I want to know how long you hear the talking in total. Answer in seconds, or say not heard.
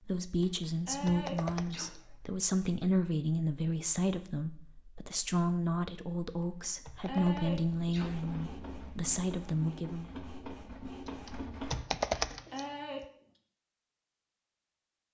10 s.